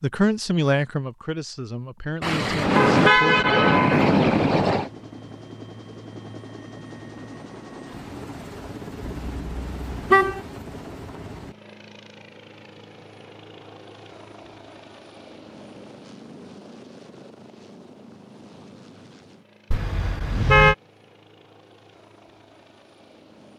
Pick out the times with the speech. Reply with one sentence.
You can hear the speech from 0.0 to 3.5 s.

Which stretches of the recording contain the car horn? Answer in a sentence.
The car horn can be heard from 2.2 to 4.9 s, from 9.0 to 10.4 s and from 19.7 to 20.8 s.